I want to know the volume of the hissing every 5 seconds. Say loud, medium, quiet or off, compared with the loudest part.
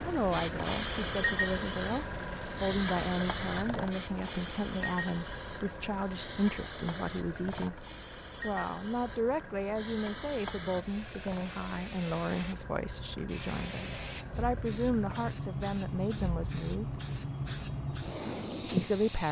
loud, medium, medium, loud.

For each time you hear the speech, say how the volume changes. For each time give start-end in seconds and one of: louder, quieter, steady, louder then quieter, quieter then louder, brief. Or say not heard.
0.1-16.9 steady
18.6-19.2 brief.